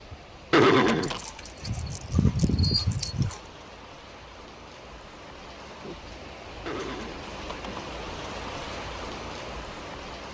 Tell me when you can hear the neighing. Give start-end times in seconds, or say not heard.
0.5-1.2, 6.7-7.9.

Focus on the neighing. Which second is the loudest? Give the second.
1 s.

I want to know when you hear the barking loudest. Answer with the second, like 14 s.
2 s.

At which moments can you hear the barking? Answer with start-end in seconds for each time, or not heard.
1.0-3.4.